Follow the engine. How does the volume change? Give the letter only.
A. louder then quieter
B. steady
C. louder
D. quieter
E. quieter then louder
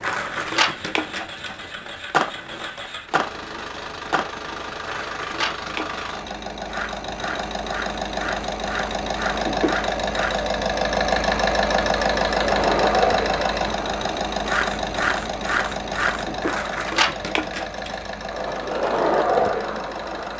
A.